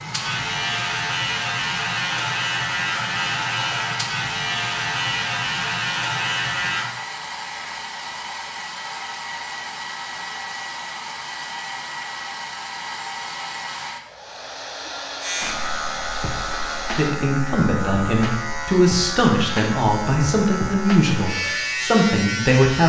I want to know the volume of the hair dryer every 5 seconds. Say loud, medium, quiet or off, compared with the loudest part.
loud, loud, loud, loud, off.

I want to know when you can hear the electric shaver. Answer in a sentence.
You can hear the electric shaver from 0.0 to 6.9 s and from 15.2 to 22.8 s.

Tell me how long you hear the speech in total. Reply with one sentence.
You can hear the speech for 6 seconds altogether.